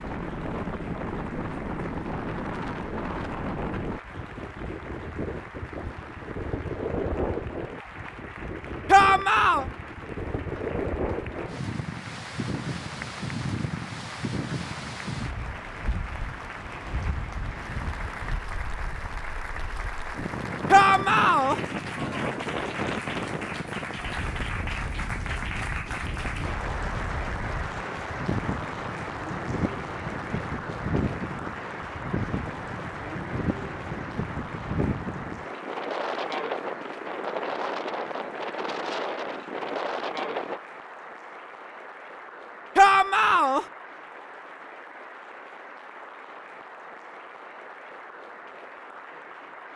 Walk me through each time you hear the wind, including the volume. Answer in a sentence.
You can hear the wind from 0.0 to 40.6 s, at a steady volume.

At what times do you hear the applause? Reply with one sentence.
You can hear the applause from 0.0 to 49.7 s.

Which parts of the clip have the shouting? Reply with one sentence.
You can hear the shouting from 8.8 to 9.7 s, from 20.7 to 21.6 s and from 42.8 to 43.6 s.